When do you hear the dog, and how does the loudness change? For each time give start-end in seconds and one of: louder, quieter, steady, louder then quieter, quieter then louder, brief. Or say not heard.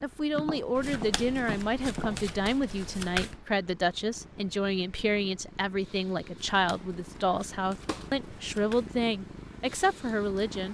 not heard.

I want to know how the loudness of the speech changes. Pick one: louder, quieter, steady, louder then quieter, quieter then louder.
steady.